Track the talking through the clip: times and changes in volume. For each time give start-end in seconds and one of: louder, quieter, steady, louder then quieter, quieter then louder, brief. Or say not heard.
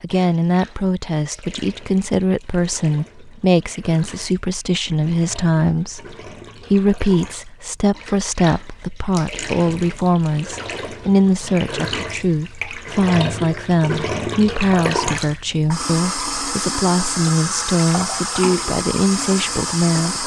0.0-20.2 steady.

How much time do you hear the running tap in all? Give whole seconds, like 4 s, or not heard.
20 s.